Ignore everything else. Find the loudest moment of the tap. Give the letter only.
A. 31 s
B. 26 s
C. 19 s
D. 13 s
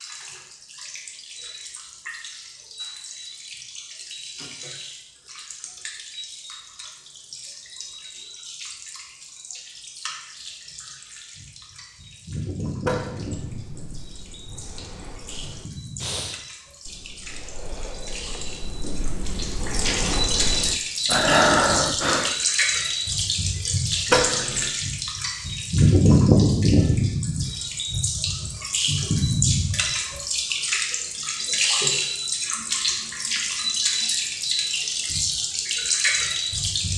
B.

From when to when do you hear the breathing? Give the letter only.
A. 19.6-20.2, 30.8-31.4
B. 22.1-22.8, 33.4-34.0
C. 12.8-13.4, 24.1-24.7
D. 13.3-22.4
D.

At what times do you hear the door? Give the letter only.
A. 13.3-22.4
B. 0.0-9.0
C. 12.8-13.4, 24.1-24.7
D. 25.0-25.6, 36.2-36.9
C.